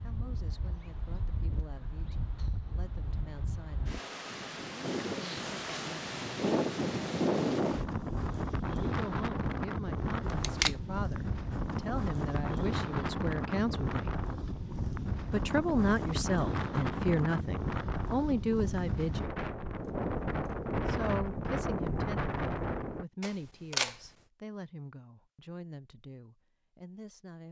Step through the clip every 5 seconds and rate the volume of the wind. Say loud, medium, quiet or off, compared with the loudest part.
medium, loud, loud, loud, loud, off.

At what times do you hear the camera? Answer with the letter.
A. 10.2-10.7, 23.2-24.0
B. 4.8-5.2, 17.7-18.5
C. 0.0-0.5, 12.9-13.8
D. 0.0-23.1
A.